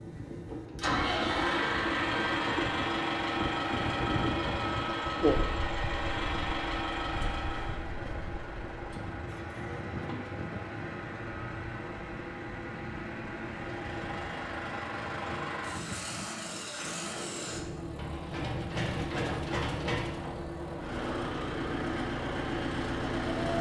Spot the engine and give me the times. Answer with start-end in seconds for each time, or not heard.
0.1-23.5.